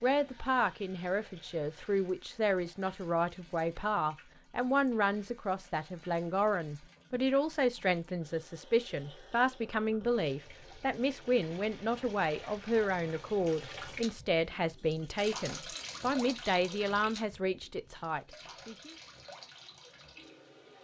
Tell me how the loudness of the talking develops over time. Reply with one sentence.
The volume of the talking stays about the same.